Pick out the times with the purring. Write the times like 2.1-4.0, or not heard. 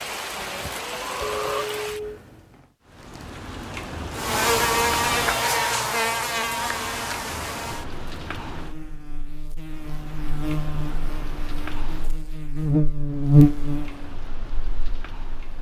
not heard.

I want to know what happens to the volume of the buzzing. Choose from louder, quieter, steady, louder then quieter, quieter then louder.
quieter then louder.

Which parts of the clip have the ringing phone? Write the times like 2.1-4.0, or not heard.
1.2-2.2.